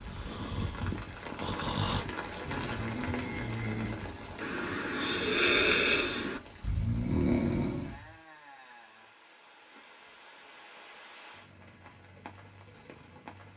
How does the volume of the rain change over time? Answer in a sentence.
The volume of the rain goes down.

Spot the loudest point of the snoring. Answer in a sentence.
The loudest moment of the snoring is at 6 seconds.